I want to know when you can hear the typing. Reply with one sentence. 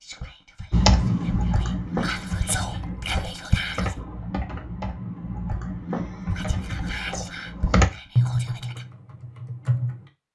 You can hear the typing from 0.7 to 10.1 s.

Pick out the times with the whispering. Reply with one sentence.
You can hear the whispering from 0.0 to 4.0 s and from 6.2 to 8.8 s.